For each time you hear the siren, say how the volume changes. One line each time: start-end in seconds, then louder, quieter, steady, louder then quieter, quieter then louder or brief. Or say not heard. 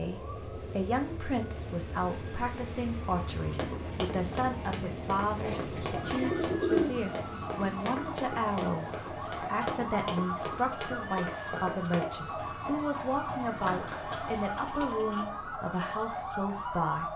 0.0-17.1 louder.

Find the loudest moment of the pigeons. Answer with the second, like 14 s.
7 s.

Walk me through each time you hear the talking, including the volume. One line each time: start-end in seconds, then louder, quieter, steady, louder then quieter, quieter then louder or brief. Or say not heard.
0.0-17.1 steady.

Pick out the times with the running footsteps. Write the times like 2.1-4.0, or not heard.
3.5-14.6.